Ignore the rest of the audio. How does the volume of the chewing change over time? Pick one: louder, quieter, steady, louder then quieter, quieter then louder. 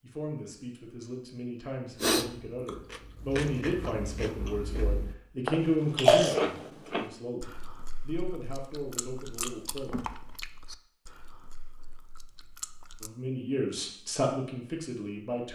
louder then quieter.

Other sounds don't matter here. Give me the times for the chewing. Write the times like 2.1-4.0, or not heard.
1.9-13.1.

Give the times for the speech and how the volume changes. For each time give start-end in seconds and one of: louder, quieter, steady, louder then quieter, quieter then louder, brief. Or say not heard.
0.0-10.2 louder then quieter
13.0-15.5 brief.